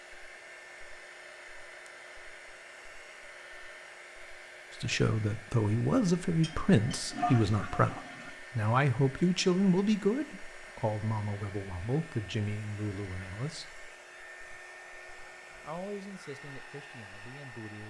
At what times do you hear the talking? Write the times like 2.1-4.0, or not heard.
4.8-13.8, 15.6-17.8.